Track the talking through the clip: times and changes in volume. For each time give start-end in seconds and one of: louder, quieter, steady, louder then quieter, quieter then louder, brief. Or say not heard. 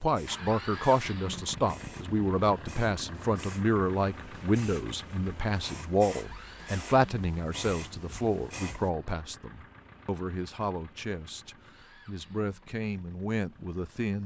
0.0-14.2 quieter.